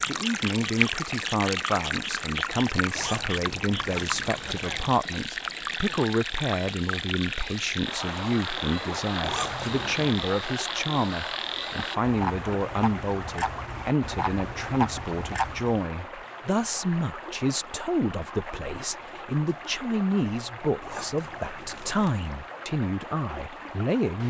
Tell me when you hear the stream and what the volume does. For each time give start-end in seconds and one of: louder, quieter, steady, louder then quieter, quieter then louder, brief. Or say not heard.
0.0-24.2 quieter.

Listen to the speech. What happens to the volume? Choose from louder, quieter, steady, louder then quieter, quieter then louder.
steady.